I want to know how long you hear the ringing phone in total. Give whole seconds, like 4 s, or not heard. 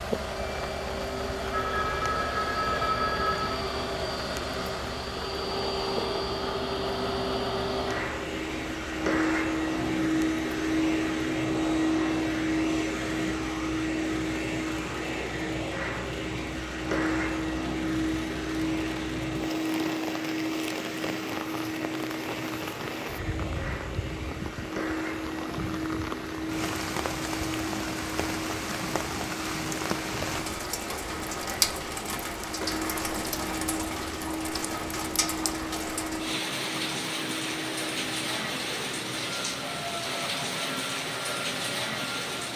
2 s.